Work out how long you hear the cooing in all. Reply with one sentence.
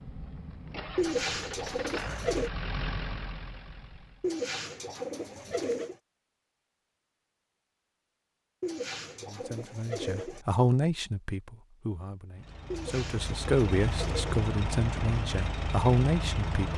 You can hear the cooing for 7 seconds altogether.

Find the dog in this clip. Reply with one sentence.
You can't hear the dog here.